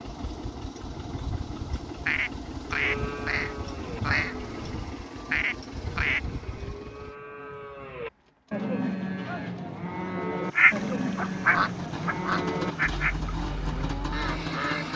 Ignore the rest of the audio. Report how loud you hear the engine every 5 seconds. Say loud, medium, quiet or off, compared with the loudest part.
loud, medium, loud.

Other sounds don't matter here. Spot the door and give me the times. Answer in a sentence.
The door can't be heard in this clip.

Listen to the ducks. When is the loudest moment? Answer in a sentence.
The loudest moment of the ducks is at 11 seconds.